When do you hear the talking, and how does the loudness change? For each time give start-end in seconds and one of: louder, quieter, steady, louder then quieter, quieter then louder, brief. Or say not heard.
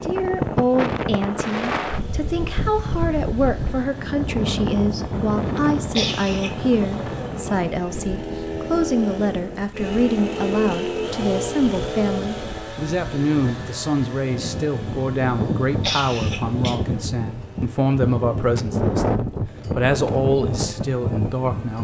0.0-21.7 steady.